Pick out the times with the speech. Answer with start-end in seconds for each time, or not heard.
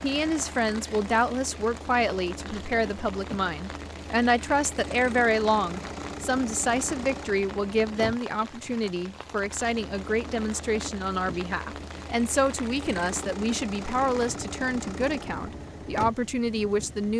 0.0-17.1.